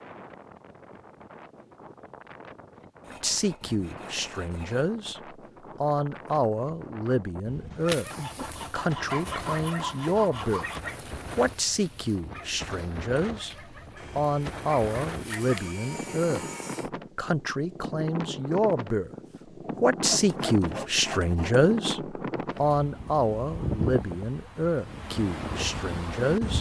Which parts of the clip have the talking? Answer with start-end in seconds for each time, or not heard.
3.1-10.7, 11.3-19.1, 19.8-26.5.